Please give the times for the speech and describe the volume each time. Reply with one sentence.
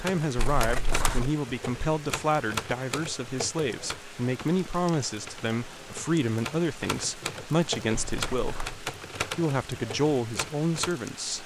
You can hear the speech from 0.0 to 11.4 s, at a steady volume.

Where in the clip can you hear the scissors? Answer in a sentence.
You can hear the scissors from 0.3 to 1.3 s and from 7.9 to 8.8 s.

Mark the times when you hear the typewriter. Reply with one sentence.
The typewriter can be heard from 0.1 to 10.9 s.